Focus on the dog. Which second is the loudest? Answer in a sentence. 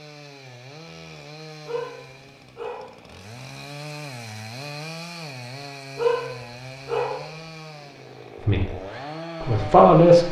The loudest moment of the dog is at 6 seconds.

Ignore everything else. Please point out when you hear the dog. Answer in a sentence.
The dog can be heard from 1.6 to 3.0 s and from 6.0 to 7.3 s.